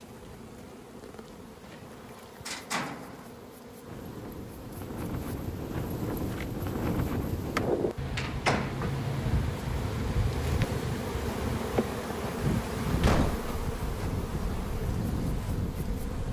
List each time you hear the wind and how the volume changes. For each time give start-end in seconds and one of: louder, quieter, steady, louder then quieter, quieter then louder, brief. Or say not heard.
0.0-16.2 louder.